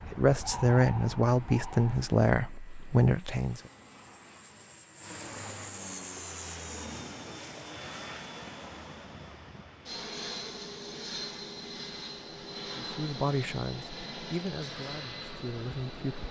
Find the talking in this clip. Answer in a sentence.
The talking can be heard from 0.1 to 3.6 s and from 12.8 to 16.2 s.